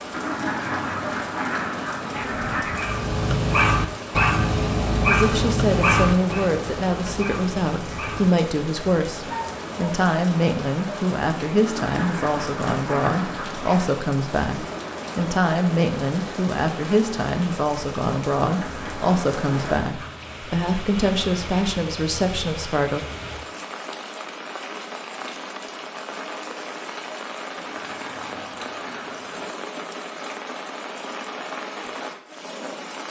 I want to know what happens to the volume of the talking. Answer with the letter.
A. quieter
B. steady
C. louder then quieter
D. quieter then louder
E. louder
B.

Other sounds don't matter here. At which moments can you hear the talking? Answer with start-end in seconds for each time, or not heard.
5.0-23.1.